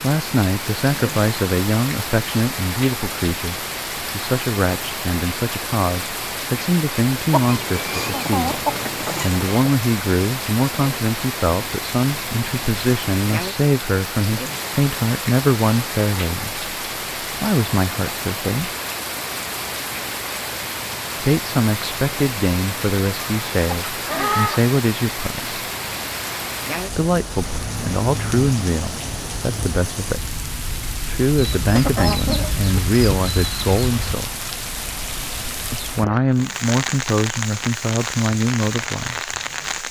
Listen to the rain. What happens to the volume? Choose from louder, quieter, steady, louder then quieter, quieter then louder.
steady.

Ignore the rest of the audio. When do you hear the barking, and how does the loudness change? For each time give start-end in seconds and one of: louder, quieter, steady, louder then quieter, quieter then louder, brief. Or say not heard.
not heard.